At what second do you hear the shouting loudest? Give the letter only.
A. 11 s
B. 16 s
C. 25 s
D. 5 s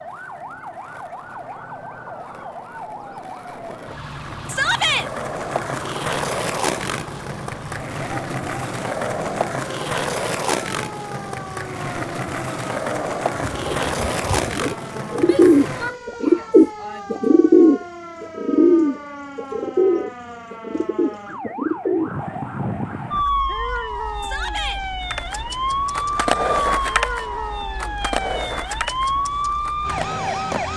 D.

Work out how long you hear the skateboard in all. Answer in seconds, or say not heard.
22 s.